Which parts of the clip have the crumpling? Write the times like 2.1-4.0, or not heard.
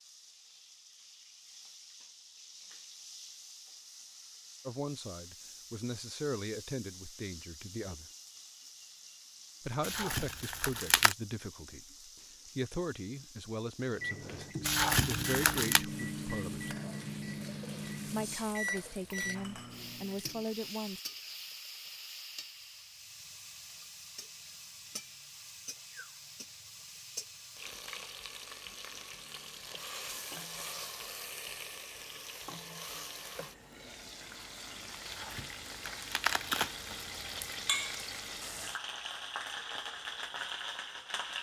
9.8-11.2, 14.6-15.8, 35.0-37.5.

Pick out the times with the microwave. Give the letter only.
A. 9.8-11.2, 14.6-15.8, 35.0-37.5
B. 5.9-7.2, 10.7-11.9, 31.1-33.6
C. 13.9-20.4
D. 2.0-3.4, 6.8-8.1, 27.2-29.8
C.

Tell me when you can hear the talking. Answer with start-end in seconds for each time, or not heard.
4.7-8.1, 9.6-16.7, 18.1-21.0.